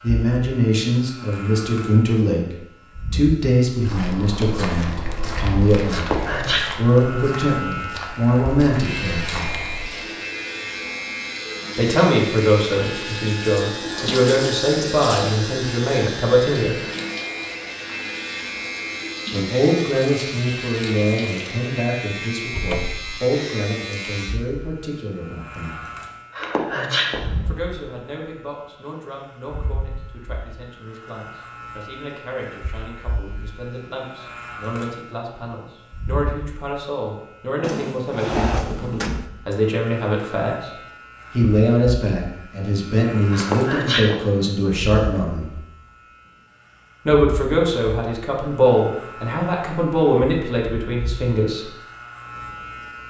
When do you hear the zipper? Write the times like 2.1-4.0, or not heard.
not heard.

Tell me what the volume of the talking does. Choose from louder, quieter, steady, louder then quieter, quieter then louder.
quieter then louder.